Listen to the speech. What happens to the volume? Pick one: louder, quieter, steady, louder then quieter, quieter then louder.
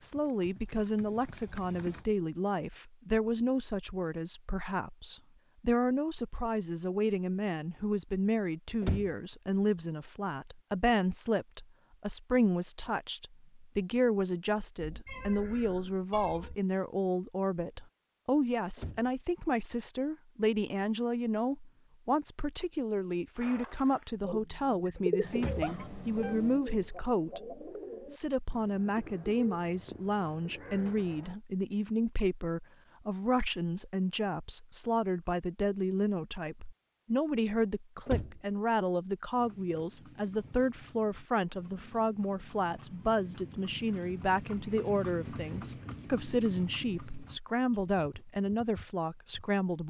steady.